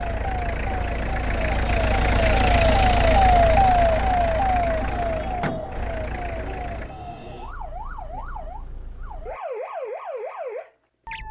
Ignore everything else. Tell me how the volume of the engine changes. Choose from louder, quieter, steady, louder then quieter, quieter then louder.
louder then quieter.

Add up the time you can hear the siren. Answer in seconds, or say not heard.
11 s.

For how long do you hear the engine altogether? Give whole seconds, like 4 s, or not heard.
7 s.